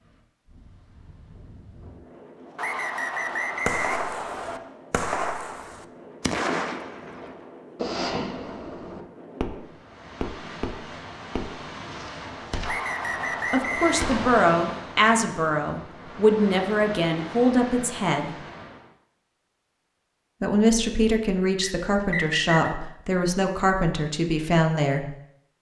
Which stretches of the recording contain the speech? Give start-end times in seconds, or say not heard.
13.5-18.4, 20.4-25.1.